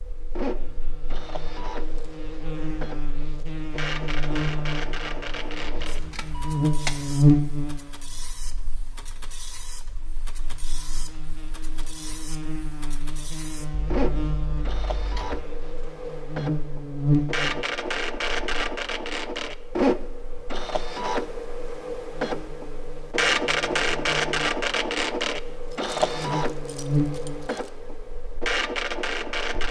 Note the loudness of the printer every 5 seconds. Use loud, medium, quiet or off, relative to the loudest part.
medium, quiet, medium, loud, loud, loud.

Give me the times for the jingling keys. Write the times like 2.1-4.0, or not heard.
5.7-7.2, 13.7-15.4, 25.9-27.7.